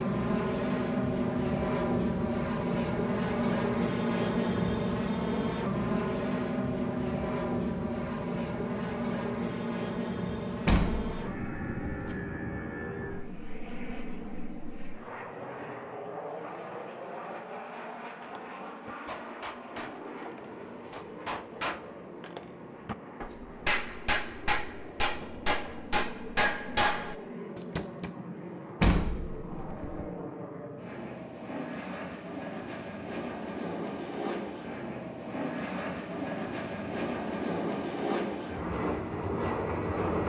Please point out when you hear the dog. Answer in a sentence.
The dog can't be heard in this clip.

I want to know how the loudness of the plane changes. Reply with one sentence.
The volume of the plane goes down, then up.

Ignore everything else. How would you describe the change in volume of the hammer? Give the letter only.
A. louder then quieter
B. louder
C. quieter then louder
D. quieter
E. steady
B.